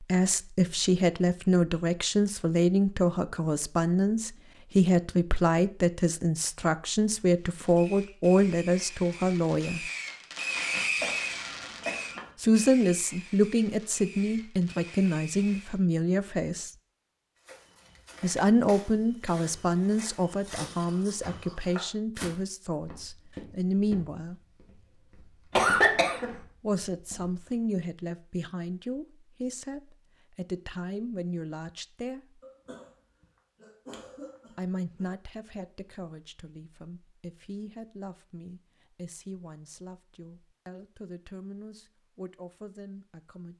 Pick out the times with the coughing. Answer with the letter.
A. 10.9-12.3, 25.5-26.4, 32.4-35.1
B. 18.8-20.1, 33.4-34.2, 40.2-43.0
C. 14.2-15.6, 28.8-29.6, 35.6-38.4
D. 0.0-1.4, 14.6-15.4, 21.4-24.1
A.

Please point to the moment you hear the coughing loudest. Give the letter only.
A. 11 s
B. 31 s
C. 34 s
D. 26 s
D.